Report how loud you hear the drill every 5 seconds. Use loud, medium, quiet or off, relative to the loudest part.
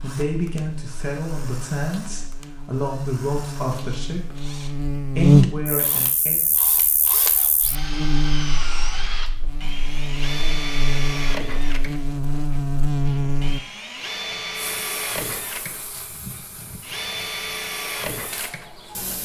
quiet, loud, loud, loud.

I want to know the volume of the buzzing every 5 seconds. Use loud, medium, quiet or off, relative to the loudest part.
medium, loud, loud, off.